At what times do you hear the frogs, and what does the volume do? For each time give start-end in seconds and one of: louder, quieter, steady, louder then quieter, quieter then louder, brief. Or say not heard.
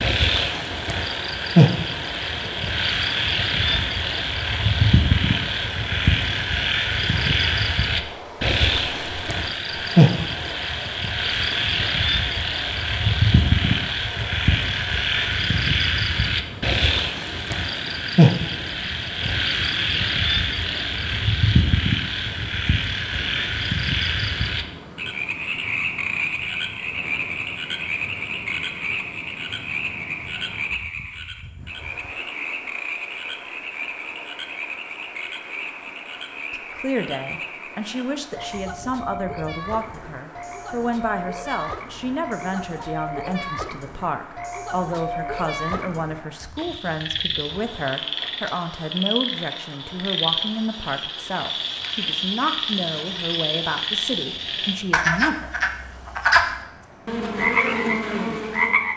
0.0-58.9 quieter then louder.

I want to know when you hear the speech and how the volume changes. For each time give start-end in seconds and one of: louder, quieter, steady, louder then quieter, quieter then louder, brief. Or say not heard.
36.5-55.5 steady.